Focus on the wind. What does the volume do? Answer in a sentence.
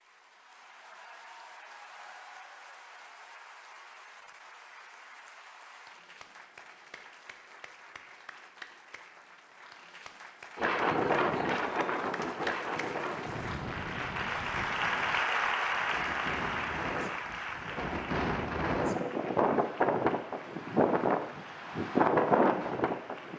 The loudness of the wind goes down, then up.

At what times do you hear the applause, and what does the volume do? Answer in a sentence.
The applause can be heard from 0.0 to 23.3 s, getting louder then quieter.